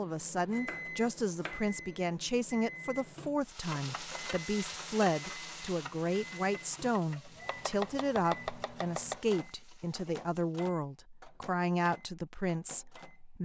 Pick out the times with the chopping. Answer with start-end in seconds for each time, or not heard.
0.5-1.8, 7.5-9.2.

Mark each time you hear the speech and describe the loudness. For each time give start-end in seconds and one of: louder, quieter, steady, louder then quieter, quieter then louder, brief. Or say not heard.
0.0-13.4 steady.